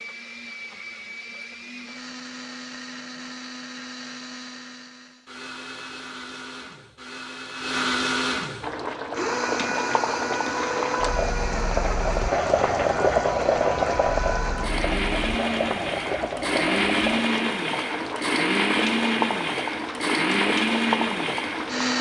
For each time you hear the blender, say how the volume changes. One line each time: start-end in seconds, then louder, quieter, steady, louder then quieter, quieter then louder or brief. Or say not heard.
0.0-21.9 louder.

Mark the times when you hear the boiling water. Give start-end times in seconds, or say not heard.
8.6-21.9.